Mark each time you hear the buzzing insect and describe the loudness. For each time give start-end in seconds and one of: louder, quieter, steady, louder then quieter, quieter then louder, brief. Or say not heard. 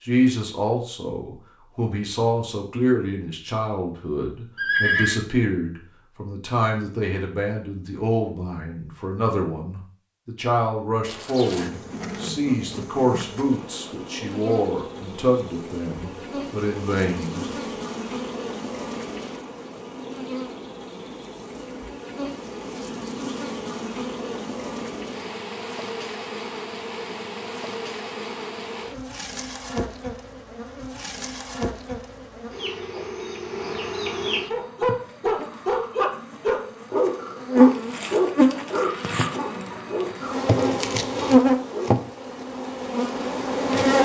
11.1-44.0 louder.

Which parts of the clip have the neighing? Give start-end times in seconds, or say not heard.
4.5-5.2.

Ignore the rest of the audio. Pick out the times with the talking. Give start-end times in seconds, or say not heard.
0.1-17.4.